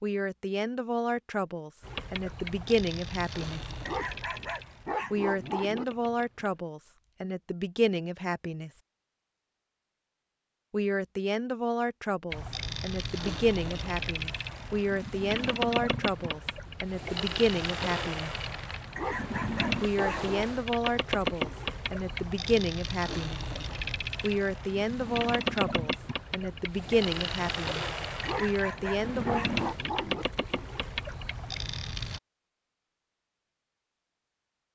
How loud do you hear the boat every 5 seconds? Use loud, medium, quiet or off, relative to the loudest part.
medium, quiet, loud, loud, loud, loud, loud.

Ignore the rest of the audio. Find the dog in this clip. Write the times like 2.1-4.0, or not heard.
3.9-5.8, 18.9-20.4, 28.2-30.2.